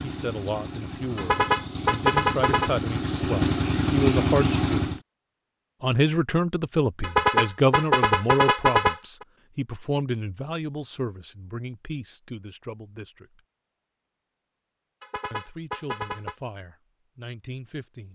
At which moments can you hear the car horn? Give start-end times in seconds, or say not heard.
1.1-2.7, 7.0-9.2, 15.0-16.4.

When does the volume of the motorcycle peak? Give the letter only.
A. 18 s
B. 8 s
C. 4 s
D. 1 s
C.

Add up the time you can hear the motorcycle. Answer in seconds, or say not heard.
5 s.